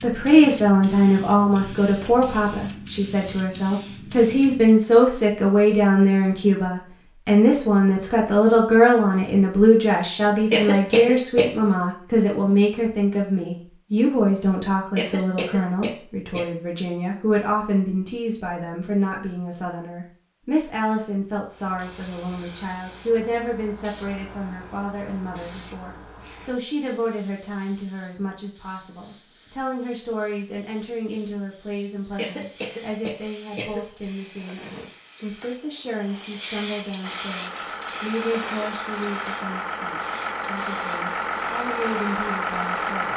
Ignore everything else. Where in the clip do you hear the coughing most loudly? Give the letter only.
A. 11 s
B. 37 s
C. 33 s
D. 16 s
A.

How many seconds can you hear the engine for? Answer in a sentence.
You can hear the engine for 6 seconds altogether.